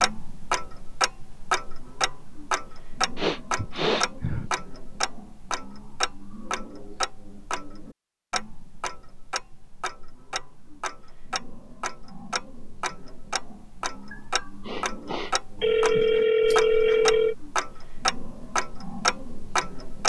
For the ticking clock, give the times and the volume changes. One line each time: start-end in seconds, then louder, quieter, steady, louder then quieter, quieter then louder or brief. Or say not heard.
0.0-20.0 quieter then louder.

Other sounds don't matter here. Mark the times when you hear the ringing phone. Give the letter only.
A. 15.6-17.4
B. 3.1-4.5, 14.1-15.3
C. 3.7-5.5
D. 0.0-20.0
A.